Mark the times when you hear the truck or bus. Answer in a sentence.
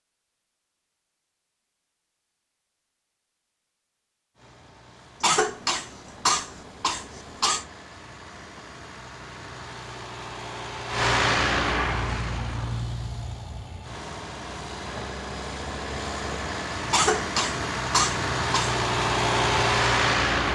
You can hear the truck or bus from 4.3 to 20.4 s.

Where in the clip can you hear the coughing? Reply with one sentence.
The coughing can be heard from 5.2 to 7.7 s and from 16.9 to 18.8 s.